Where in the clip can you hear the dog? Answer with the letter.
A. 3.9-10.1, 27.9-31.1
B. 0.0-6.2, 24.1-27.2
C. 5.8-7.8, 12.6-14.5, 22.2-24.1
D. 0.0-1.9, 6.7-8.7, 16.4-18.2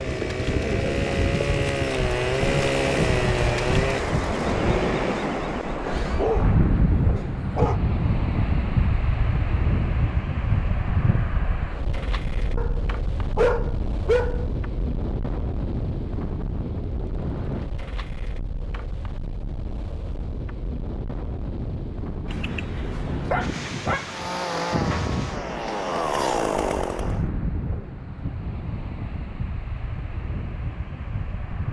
C.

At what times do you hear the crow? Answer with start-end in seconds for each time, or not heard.
not heard.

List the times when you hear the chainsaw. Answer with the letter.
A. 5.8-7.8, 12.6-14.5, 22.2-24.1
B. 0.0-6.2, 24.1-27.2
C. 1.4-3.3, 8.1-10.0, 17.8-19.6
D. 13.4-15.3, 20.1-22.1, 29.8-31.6
B.